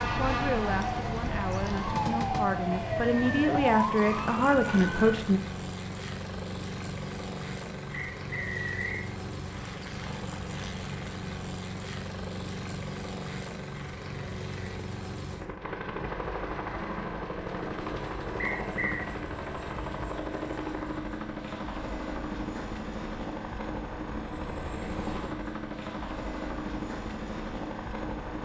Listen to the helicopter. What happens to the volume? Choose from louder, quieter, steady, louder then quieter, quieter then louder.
steady.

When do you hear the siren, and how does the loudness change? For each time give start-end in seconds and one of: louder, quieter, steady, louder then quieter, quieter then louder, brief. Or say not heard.
0.0-5.2 steady.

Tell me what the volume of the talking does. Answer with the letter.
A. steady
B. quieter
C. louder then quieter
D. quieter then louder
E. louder
E.